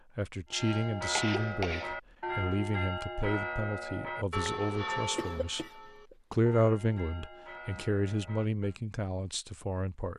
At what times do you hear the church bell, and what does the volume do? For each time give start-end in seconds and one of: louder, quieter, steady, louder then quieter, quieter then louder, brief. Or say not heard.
0.5-8.8 quieter.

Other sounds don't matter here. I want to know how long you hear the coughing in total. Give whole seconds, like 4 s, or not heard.
2 s.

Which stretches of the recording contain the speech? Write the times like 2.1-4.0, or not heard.
0.1-5.7, 6.3-10.1.